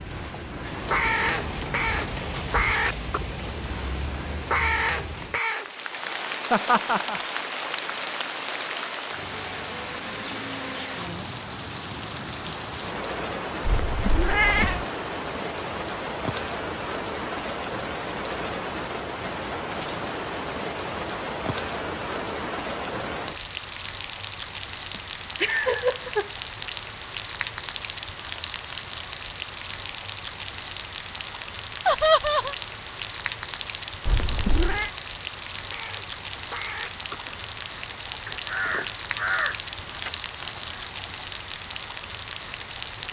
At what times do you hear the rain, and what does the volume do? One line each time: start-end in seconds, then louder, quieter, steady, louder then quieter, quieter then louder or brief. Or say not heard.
0.0-43.0 steady.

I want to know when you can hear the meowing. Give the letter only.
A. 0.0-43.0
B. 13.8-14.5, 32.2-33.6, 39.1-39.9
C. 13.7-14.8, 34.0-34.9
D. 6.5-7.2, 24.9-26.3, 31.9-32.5
C.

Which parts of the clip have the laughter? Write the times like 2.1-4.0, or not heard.
6.5-7.2, 24.9-26.3, 31.9-32.5.